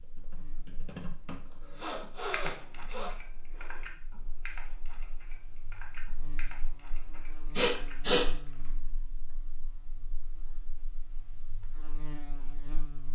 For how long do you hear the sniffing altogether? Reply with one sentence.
The sniffing can be heard for 3 seconds in total.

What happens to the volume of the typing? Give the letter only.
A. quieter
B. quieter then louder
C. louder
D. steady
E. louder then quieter
A.